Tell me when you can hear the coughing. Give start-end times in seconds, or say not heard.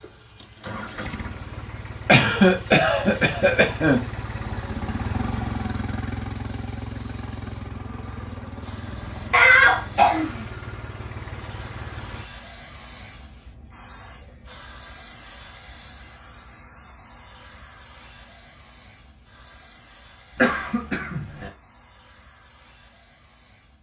2.0-4.0, 9.3-10.4, 20.4-21.5.